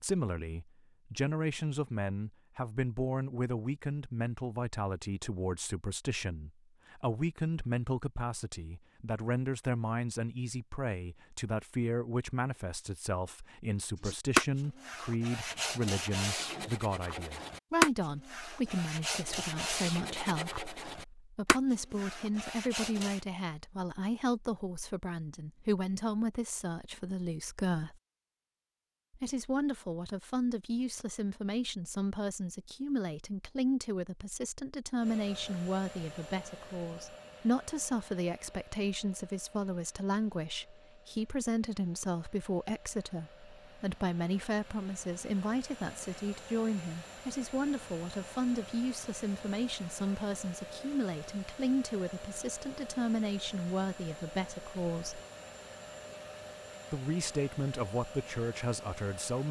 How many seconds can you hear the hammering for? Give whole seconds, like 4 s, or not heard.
not heard.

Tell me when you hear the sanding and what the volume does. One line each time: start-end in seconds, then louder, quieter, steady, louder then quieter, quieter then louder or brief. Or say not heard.
14.0-23.2 louder then quieter.